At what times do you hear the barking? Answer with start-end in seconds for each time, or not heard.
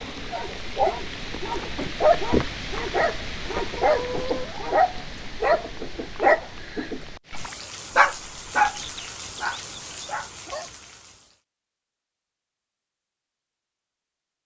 0.3-10.7.